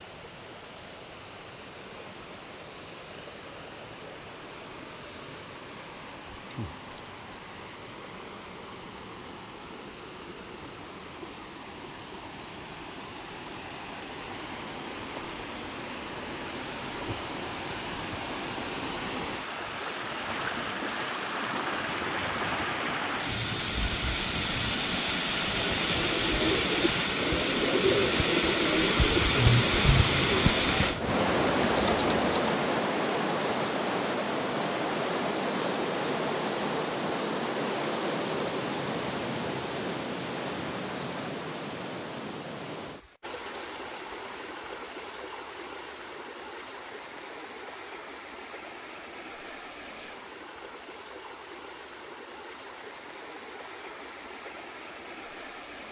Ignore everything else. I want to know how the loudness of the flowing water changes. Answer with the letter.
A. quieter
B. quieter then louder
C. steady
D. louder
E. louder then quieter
E.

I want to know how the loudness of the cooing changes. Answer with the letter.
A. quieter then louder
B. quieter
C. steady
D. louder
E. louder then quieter
C.